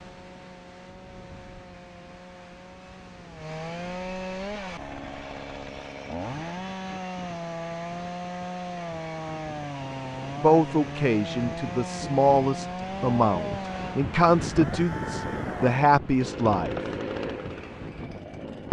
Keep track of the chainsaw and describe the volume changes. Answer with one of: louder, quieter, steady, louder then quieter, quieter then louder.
louder.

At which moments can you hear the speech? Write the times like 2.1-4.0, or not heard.
10.4-16.8.